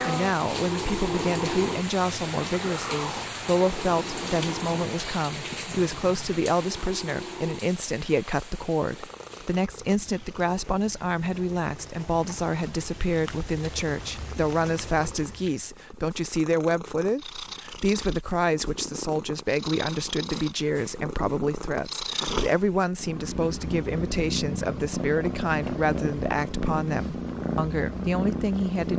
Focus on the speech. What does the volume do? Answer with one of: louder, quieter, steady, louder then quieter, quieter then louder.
steady.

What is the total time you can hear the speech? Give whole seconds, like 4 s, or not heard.
29 s.